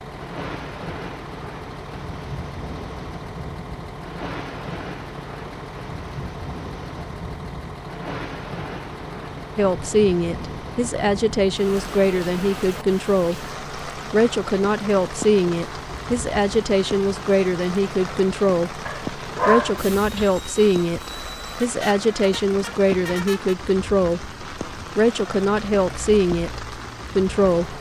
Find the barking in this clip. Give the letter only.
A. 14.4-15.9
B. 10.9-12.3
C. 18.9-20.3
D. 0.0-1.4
C.